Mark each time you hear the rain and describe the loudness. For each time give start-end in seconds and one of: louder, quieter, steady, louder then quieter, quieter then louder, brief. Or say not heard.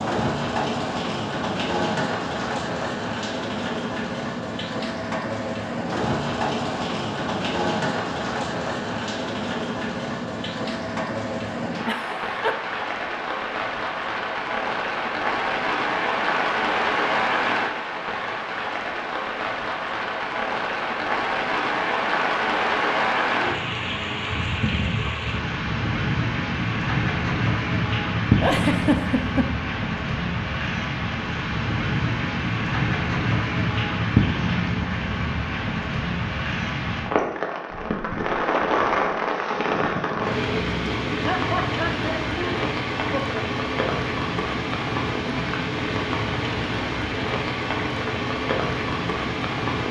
0.0-49.8 steady.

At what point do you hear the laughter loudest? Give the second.
29 s.